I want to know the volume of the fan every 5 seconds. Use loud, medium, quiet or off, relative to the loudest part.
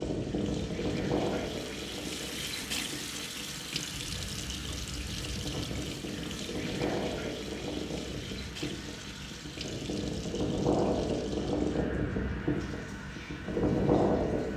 medium, medium, loud.